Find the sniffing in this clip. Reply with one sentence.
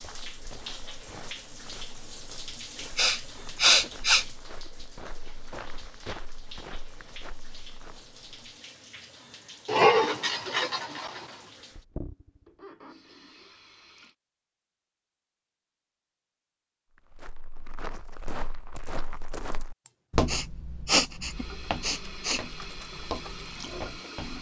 You can hear the sniffing from 3.0 to 4.2 s, from 9.7 to 11.2 s and from 19.9 to 22.4 s.